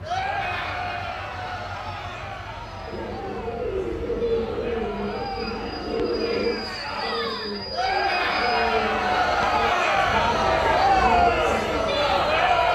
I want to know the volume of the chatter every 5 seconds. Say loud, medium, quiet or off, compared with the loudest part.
quiet, medium, loud.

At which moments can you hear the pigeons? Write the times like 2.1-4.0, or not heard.
2.9-11.8.